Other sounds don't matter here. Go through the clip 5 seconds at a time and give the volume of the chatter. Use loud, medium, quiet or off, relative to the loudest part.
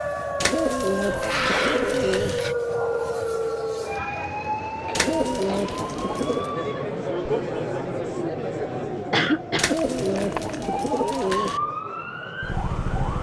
medium, loud, medium.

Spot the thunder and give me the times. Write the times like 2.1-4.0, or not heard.
not heard.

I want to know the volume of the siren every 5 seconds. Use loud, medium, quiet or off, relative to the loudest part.
loud, medium, loud.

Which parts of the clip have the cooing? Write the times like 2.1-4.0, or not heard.
0.4-2.4, 5.0-6.5, 9.6-11.6.